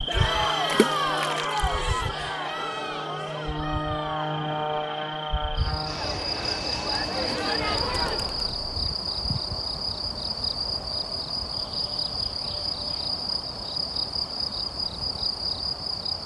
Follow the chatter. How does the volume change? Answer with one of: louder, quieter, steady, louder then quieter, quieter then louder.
quieter then louder.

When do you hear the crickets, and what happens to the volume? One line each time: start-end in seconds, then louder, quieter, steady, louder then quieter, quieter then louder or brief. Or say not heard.
0.0-16.2 louder.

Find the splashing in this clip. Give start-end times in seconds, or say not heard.
0.7-1.6.